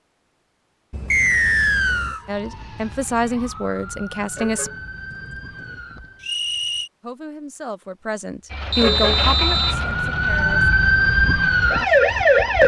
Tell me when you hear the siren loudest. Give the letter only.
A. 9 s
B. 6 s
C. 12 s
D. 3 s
C.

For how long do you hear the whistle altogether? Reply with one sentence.
The whistle can be heard for 3 seconds in total.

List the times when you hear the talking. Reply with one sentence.
You can hear the talking from 2.2 to 4.7 s and from 7.0 to 10.7 s.